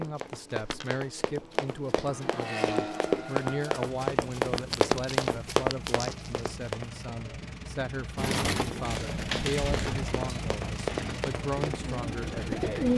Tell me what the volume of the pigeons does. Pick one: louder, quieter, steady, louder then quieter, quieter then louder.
quieter then louder.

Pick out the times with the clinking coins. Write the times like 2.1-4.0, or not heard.
0.6-1.0, 4.5-6.3, 8.8-10.4.